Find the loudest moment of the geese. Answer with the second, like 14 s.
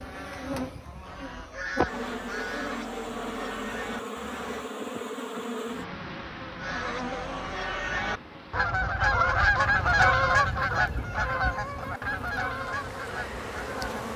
10 s.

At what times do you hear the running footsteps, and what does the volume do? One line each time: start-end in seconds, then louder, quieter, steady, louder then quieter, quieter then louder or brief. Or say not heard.
not heard.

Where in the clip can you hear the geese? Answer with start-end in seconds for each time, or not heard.
0.0-4.7, 6.5-14.1.